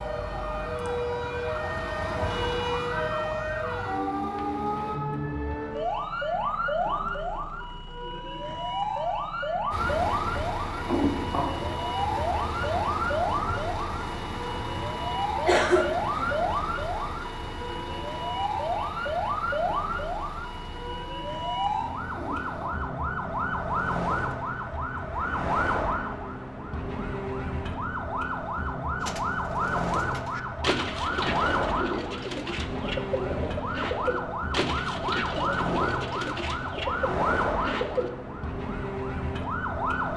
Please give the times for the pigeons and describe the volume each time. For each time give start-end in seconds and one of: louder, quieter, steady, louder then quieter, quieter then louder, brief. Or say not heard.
29.0-38.1 steady.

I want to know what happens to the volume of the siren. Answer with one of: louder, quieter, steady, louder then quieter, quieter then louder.
steady.